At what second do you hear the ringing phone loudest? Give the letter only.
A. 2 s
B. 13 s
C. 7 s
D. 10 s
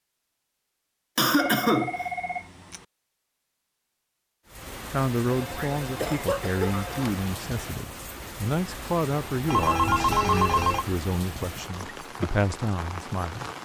D.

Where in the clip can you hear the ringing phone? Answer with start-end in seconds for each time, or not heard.
1.4-2.9, 5.3-7.3, 9.4-10.8.